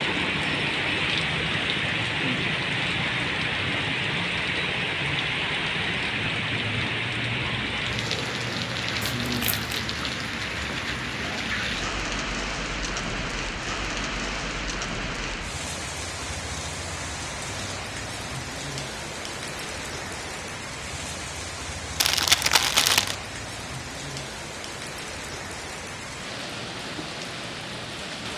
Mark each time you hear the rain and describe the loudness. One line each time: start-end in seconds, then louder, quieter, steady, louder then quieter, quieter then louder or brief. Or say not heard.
0.0-28.3 quieter.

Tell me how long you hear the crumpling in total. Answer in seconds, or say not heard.
2 s.